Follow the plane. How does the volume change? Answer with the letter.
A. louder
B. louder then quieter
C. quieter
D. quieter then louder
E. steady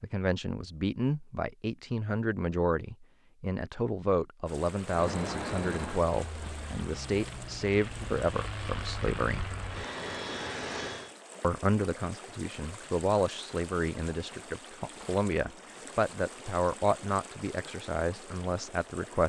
D.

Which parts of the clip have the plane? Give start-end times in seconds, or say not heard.
4.8-11.2.